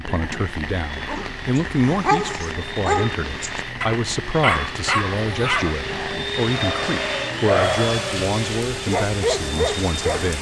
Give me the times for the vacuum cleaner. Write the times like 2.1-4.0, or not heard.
0.0-10.3.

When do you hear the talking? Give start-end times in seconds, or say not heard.
0.0-10.3.